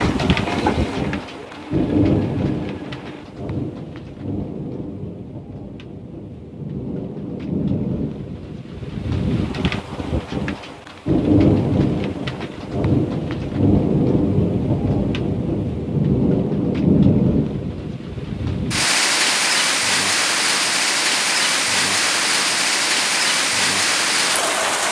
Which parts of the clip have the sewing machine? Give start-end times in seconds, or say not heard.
0.0-3.2.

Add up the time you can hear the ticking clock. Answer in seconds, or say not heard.
not heard.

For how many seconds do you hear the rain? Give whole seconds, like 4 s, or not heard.
25 s.